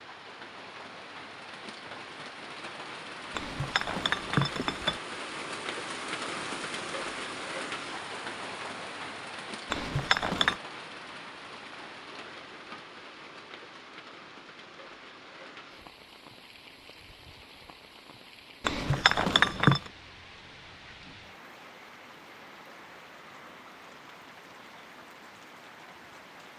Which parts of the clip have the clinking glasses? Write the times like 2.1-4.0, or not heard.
3.3-5.0, 9.7-10.6, 18.6-19.9.